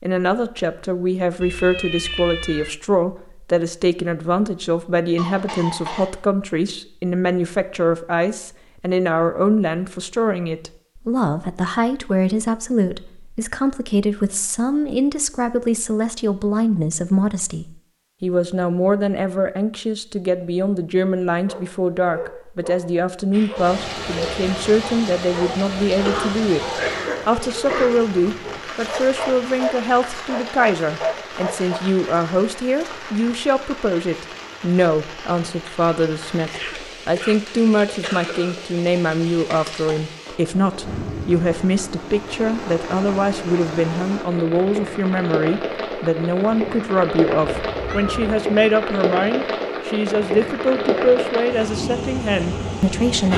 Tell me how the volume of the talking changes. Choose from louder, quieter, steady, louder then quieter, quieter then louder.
steady.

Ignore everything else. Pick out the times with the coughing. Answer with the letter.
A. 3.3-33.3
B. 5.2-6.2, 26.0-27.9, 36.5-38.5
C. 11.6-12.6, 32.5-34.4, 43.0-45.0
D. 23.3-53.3
B.